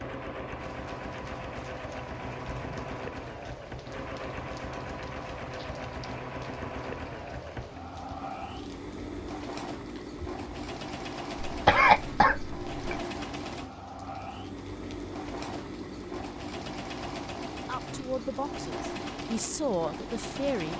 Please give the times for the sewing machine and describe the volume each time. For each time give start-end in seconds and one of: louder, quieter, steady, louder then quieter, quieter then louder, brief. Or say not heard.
0.0-20.7 steady.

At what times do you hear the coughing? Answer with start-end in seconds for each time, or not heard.
11.4-12.8.